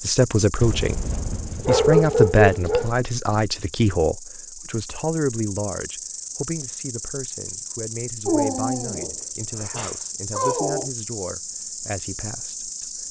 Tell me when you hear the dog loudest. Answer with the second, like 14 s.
2 s.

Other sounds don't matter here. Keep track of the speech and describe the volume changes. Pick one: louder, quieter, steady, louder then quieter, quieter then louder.
quieter.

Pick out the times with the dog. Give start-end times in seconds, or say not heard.
0.6-3.0, 8.2-10.9.